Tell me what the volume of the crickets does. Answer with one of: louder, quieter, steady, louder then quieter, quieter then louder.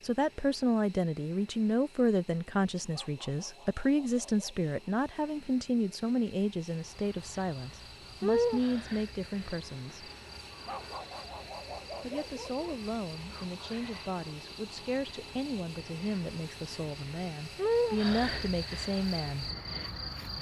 quieter then louder.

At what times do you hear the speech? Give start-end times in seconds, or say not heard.
0.0-10.1, 12.0-19.4.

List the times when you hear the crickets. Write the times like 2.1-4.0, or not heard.
6.9-20.3.